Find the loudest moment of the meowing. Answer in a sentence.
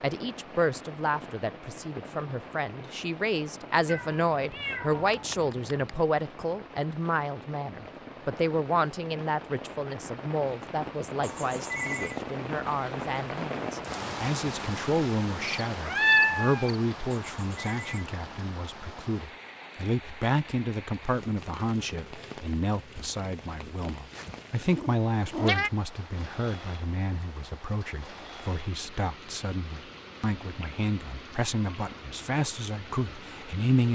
The loudest moment of the meowing is at 16 seconds.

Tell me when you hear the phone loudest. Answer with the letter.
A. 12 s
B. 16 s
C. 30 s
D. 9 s
A.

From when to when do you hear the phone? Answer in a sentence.
The phone can be heard from 11.2 to 12.2 s and from 17.3 to 18.1 s.